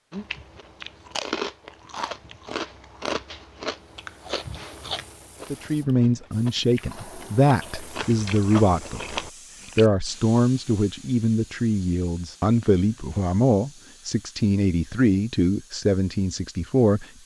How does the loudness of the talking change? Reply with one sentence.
The loudness of the talking stays about the same.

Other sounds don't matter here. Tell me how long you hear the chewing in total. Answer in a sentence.
You can hear the chewing for 10 seconds altogether.